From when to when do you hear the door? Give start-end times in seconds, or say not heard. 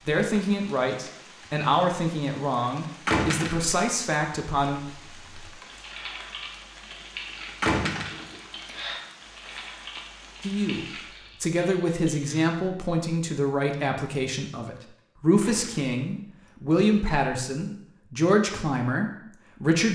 3.0-3.8, 7.6-8.3, 15.4-15.9.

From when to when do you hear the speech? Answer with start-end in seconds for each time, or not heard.
0.1-4.8, 10.4-19.9.